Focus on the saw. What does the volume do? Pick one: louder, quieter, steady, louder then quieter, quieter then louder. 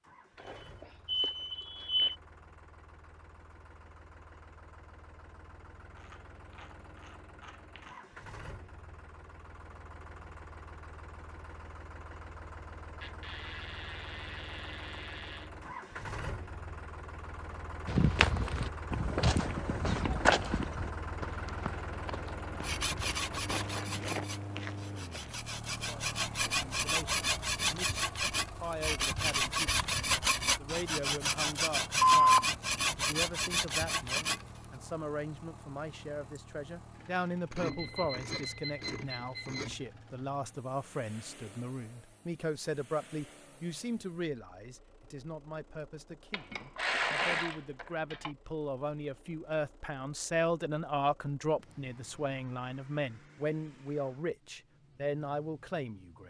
louder.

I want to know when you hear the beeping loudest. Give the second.
32 s.